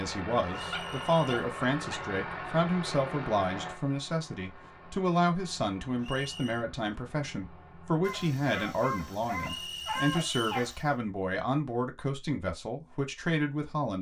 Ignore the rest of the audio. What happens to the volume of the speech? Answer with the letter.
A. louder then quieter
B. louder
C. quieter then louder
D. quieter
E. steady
E.